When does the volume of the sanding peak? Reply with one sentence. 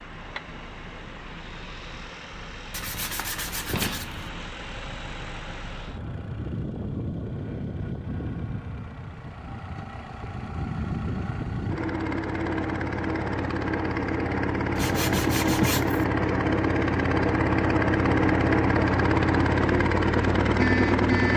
The loudest moment of the sanding is at 16 seconds.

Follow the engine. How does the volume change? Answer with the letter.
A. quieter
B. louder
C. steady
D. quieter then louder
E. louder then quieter
B.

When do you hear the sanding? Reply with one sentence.
You can hear the sanding from 2.7 to 4.3 s and from 14.8 to 16.1 s.